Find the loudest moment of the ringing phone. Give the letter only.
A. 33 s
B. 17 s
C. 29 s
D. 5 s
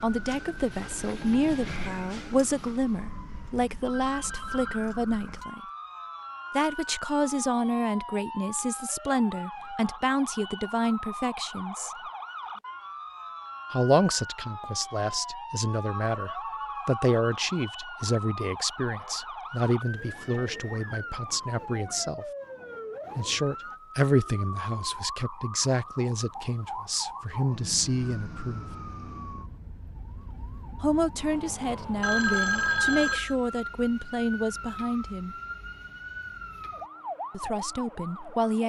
A.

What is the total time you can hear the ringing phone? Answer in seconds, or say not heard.
4 s.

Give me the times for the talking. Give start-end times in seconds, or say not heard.
0.0-5.6, 6.5-11.9, 13.7-22.2, 23.1-28.6, 30.8-35.4, 37.3-38.6.